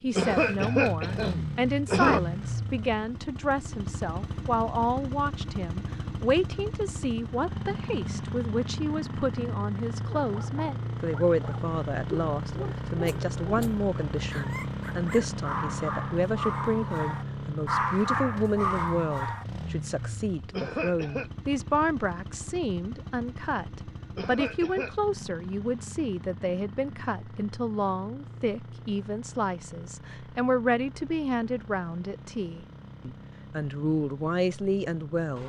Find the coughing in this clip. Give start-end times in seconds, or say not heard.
0.1-2.2, 20.5-21.3, 24.1-24.9.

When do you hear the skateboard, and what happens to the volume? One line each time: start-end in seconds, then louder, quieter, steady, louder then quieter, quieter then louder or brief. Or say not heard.
not heard.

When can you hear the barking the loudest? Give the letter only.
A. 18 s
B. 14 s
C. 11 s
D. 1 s
A.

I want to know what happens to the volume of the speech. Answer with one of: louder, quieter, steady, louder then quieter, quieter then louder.
steady.